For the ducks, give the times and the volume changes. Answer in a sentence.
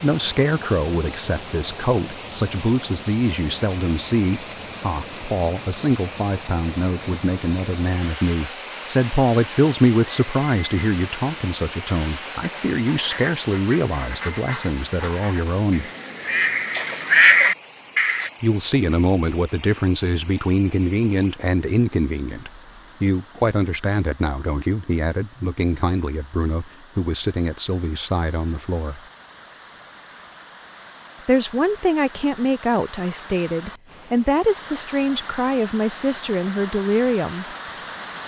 You can hear the ducks from 12.3 to 18.3 s, getting louder.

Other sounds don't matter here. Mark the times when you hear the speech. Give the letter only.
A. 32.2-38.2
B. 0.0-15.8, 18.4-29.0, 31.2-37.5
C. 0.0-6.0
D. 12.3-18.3
B.